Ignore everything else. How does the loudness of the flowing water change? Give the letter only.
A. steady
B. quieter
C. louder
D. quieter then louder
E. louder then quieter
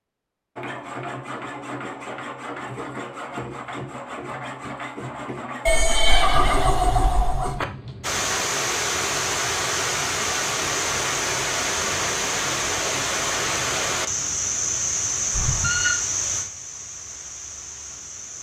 B.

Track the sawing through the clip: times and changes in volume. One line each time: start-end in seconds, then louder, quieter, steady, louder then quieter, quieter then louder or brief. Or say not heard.
0.6-6.7 steady.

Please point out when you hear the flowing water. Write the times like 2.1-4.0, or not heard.
8.0-18.3.